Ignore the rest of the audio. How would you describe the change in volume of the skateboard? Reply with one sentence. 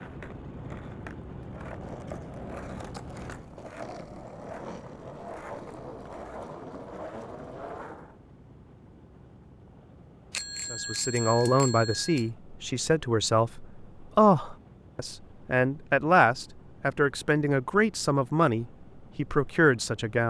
The volume of the skateboard goes up.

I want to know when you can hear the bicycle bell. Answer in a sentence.
The bicycle bell can be heard from 10.3 to 12.3 s.